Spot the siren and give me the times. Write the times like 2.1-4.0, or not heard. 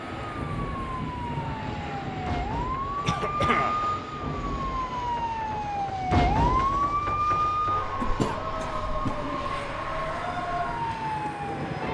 0.0-11.8.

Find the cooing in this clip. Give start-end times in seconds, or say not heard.
not heard.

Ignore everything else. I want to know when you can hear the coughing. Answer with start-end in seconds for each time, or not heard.
3.0-3.8, 8.0-9.4.